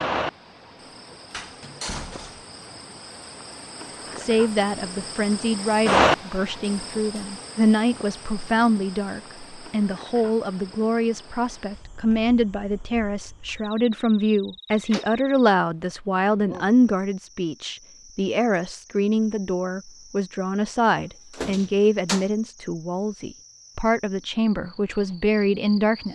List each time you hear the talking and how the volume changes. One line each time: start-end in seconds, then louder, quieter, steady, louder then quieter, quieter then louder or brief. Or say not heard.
4.2-26.1 steady.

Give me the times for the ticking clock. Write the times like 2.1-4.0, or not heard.
not heard.